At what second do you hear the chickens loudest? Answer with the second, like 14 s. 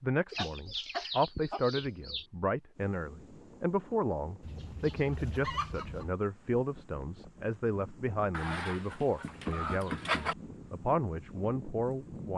10 s.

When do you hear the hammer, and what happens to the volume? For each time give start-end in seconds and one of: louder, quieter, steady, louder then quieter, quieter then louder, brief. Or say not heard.
not heard.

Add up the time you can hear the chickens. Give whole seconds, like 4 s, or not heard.
6 s.